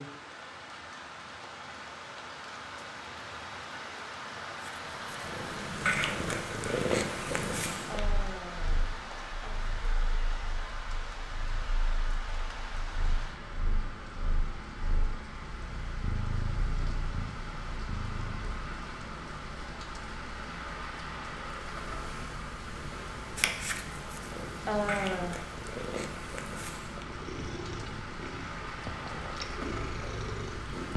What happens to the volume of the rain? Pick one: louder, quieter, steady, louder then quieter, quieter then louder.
steady.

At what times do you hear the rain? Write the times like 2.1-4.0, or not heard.
0.0-30.9.